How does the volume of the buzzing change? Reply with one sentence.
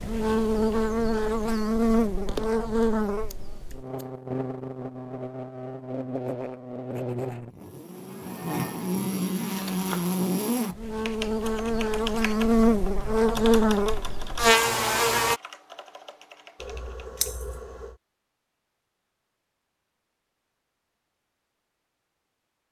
The loudness of the buzzing goes down, then up.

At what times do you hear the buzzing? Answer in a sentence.
You can hear the buzzing from 0.0 to 15.4 s.